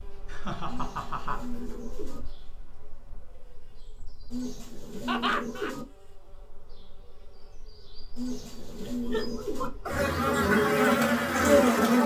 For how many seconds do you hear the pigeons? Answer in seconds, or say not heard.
5 s.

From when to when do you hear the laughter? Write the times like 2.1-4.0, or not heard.
0.2-1.6, 5.0-5.8, 8.8-9.9.